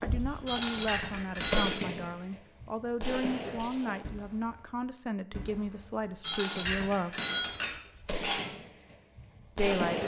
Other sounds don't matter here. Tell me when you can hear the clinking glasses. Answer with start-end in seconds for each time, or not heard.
0.5-1.8, 6.2-8.5.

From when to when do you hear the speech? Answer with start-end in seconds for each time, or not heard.
0.0-7.2, 9.6-10.0.